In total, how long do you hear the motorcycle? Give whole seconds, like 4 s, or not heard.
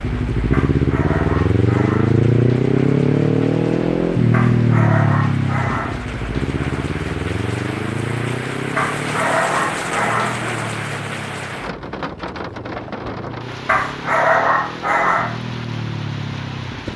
17 s.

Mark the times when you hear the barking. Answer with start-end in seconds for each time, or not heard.
0.5-2.2, 4.3-6.0, 8.8-10.4, 13.7-15.4.